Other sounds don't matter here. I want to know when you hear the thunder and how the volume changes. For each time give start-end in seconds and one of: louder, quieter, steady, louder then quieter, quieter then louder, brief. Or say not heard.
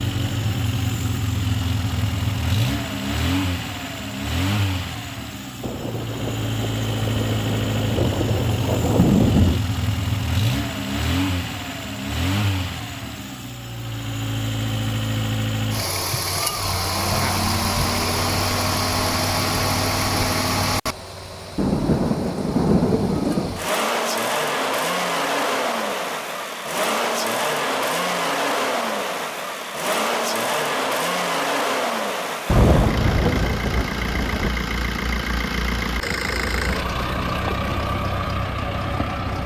5.6-9.6 louder
21.6-23.6 brief
32.5-34.5 brief.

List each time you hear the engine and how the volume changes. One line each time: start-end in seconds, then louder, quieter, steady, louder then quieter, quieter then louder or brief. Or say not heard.
0.0-39.4 steady.